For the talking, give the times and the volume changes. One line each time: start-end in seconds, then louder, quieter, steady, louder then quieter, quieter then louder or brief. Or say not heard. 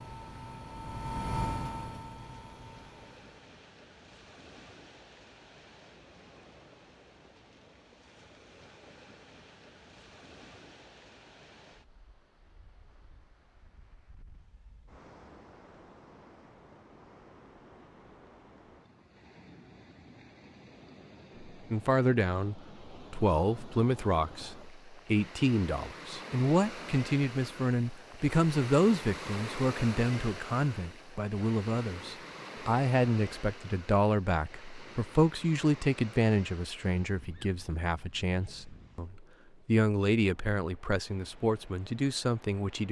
21.5-42.8 steady.